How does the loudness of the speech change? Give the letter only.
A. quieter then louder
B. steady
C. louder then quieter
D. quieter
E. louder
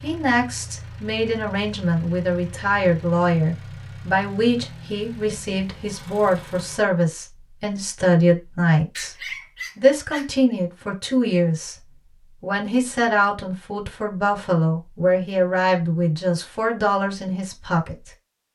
B.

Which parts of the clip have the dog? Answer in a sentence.
You can hear the dog from 8.9 to 10.6 s.